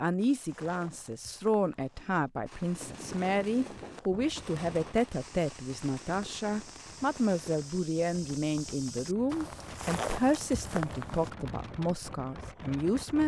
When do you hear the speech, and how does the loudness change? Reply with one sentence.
You can hear the speech from 0.0 to 13.2 s, at a steady volume.